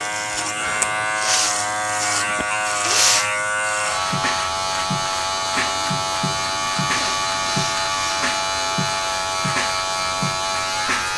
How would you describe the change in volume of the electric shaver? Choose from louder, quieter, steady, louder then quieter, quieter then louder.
steady.